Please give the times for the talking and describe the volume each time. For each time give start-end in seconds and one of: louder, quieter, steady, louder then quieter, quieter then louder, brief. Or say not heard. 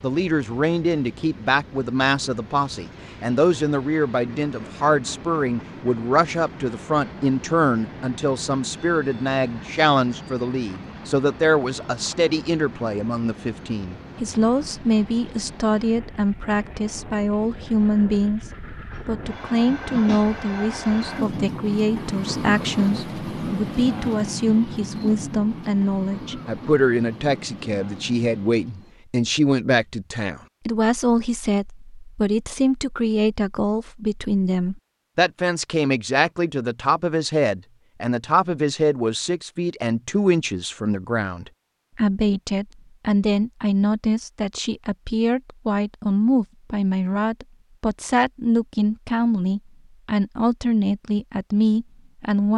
0.0-52.5 steady.